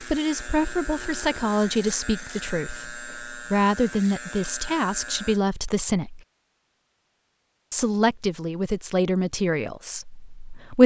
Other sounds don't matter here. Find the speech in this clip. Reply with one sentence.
The speech can be heard from 0.0 to 6.2 s and from 7.7 to 10.8 s.